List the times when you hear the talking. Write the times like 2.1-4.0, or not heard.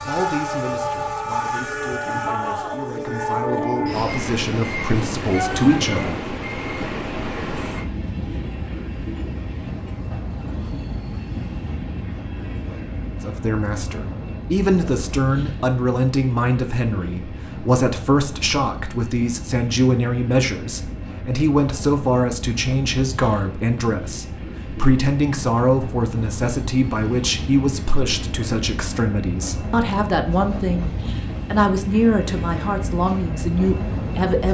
0.1-6.2, 13.2-30.9, 31.5-34.4.